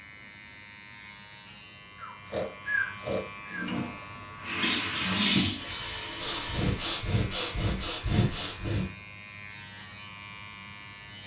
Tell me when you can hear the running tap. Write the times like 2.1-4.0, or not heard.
3.5-6.8.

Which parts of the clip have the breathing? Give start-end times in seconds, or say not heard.
1.9-3.7, 6.2-8.9.